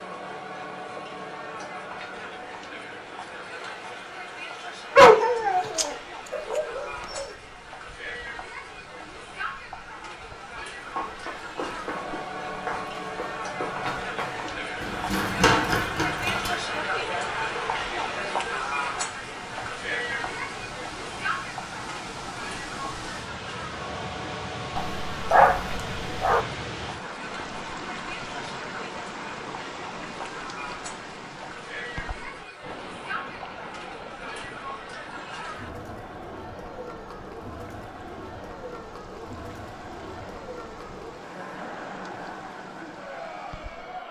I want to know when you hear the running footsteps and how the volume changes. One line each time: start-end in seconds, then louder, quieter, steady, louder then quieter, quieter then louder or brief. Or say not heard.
10.8-16.8 louder.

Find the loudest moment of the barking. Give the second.
5 s.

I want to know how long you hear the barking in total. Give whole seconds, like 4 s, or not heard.
4 s.